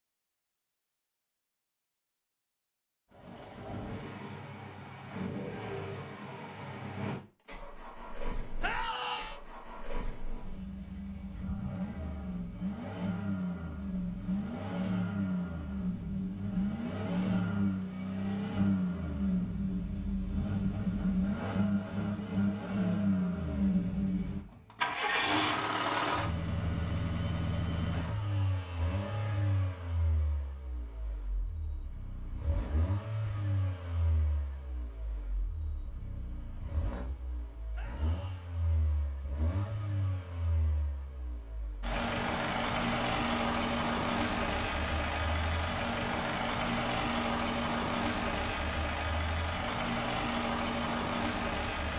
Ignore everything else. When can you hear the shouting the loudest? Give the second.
9 s.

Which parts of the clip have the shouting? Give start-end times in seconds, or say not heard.
8.6-9.4, 27.9-29.4, 37.7-38.5.